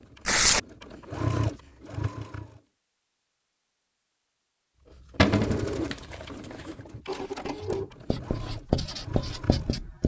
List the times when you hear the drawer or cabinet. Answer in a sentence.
You can hear the drawer or cabinet from 5.2 to 5.7 s.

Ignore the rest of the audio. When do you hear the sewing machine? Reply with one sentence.
You can hear the sewing machine from 0.0 to 2.6 s and from 4.9 to 9.9 s.